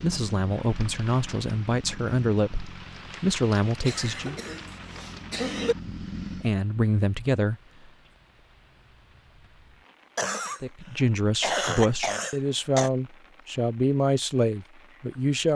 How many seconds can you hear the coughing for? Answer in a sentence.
You can hear the coughing for 4 seconds altogether.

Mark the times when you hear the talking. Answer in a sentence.
You can hear the talking from 0.0 to 4.3 s, from 5.8 to 7.5 s and from 10.6 to 15.5 s.